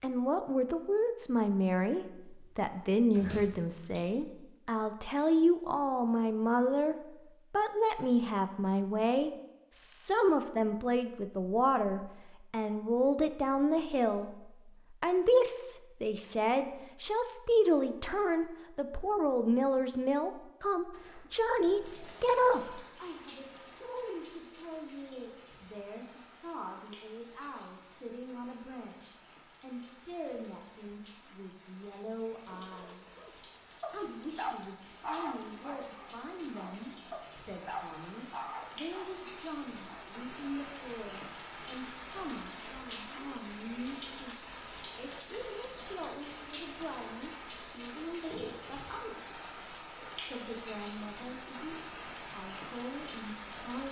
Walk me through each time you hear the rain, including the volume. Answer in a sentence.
You can hear the rain from 21.6 to 53.8 s, getting louder.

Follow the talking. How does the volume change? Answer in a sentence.
The loudness of the talking goes down.